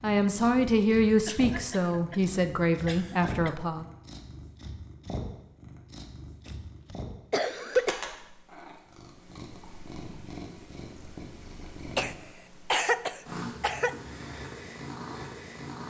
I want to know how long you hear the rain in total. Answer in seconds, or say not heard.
not heard.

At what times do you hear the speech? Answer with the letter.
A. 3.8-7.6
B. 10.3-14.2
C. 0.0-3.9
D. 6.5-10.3
C.